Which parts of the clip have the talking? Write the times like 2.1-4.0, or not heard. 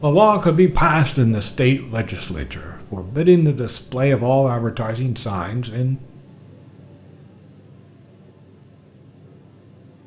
0.0-6.0.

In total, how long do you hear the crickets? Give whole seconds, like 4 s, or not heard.
10 s.